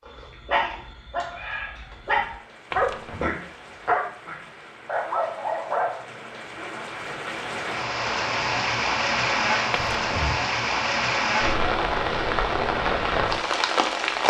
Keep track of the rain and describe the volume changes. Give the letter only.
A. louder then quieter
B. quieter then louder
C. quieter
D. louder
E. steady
D.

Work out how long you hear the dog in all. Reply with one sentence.
The dog can be heard for 6 seconds in total.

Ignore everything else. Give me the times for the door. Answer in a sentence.
You can hear the door from 2.7 to 3.3 s and from 9.7 to 10.4 s.